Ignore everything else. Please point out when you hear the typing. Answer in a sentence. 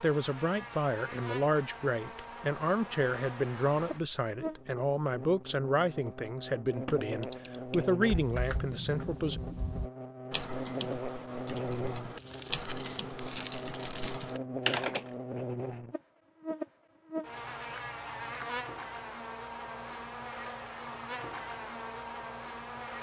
You can hear the typing from 6.8 to 15.1 s.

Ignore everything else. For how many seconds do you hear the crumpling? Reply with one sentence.
You can hear the crumpling for 3 seconds altogether.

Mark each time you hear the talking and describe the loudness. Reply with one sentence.
The talking can be heard from 0.0 to 9.4 s, at a steady volume.